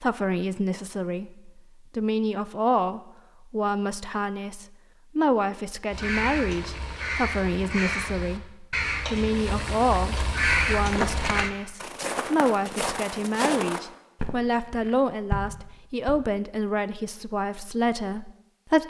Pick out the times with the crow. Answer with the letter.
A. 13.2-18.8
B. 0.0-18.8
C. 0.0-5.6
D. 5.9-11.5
D.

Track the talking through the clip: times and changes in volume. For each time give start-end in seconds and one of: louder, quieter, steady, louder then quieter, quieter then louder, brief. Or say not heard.
0.0-18.8 steady.